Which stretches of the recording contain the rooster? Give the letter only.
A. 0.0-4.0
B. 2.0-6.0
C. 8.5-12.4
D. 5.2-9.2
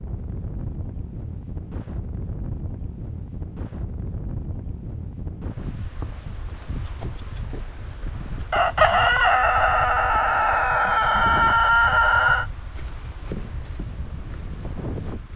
C.